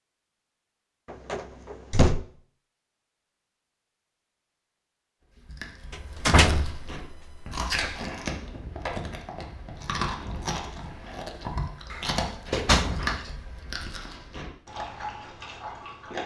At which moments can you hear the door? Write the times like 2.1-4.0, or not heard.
1.1-2.2, 5.9-8.1, 11.9-13.2.